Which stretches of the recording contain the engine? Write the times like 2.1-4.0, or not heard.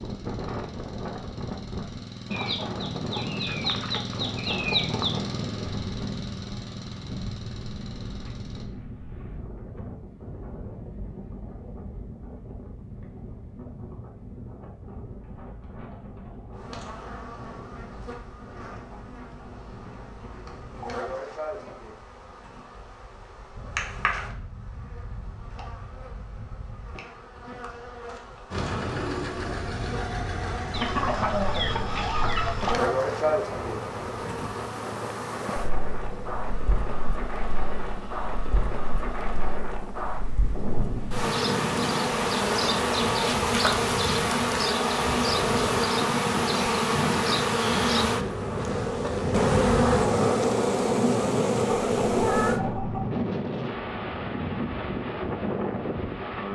0.0-8.7, 28.5-39.5.